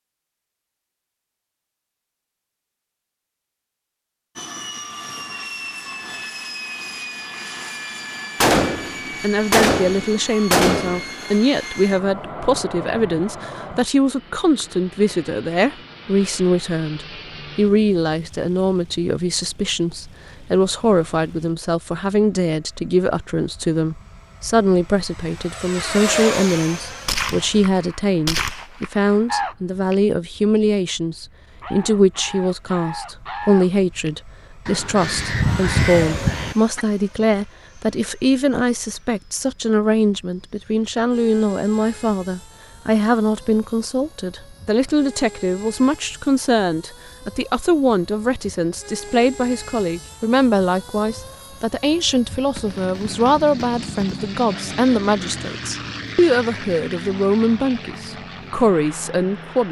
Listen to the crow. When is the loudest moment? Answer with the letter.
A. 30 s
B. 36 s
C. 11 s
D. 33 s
B.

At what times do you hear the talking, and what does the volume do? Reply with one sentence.
The talking can be heard from 9.2 to 59.6 s, at a steady volume.